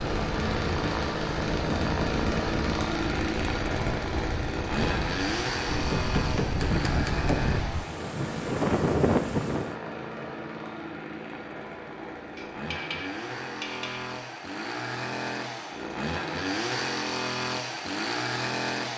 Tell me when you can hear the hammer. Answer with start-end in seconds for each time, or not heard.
5.9-7.6, 12.3-14.2.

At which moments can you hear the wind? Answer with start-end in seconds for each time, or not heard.
0.0-9.8.